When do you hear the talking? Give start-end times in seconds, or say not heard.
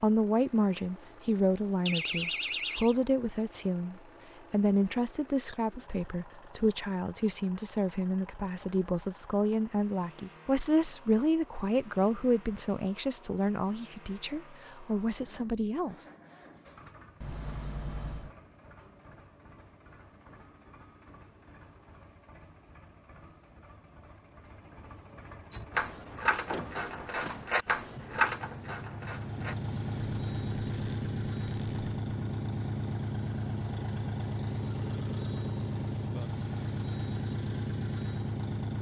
0.0-16.1.